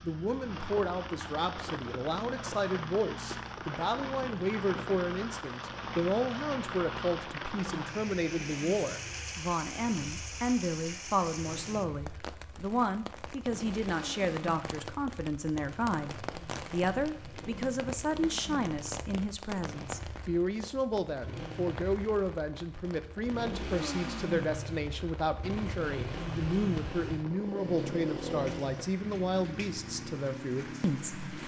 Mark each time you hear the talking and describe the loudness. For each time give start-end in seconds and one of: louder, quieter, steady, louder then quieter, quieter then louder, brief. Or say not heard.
0.0-31.2 steady.